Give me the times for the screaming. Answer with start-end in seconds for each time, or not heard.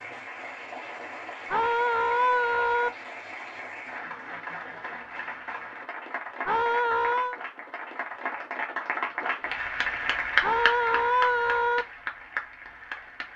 1.5-2.9, 6.5-7.4, 10.4-11.8.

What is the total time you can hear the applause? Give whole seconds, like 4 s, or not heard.
13 s.